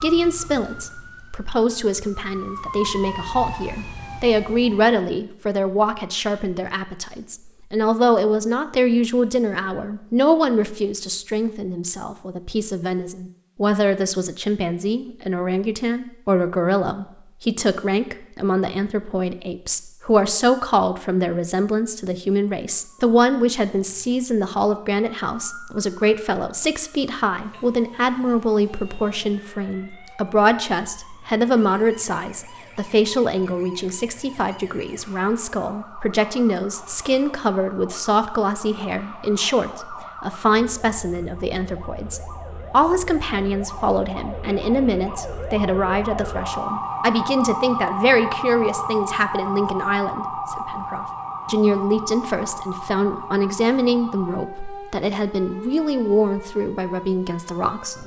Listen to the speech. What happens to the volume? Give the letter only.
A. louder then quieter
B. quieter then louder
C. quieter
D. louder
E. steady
E.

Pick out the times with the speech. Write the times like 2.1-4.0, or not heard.
0.0-58.0.